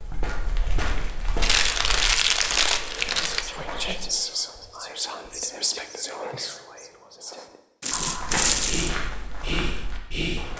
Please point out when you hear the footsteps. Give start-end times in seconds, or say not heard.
0.0-4.1, 8.2-10.5.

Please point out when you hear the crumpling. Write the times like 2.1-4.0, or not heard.
1.4-3.5, 7.8-8.9.